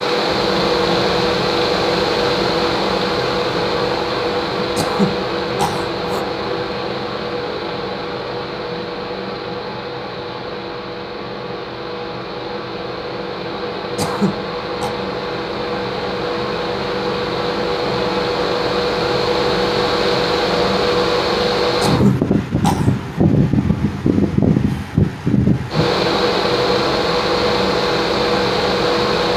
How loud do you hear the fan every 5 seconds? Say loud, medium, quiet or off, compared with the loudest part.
loud, medium, medium, loud, loud, loud.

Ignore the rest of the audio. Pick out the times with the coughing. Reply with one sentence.
You can hear the coughing from 4.8 to 6.2 s, from 13.9 to 14.9 s and from 21.8 to 22.9 s.